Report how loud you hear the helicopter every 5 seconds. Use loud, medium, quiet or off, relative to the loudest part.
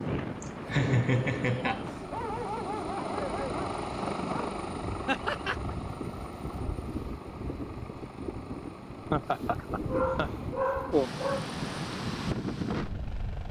loud, medium, medium.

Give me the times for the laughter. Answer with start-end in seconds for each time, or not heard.
0.4-1.9, 5.0-5.5, 9.1-10.3.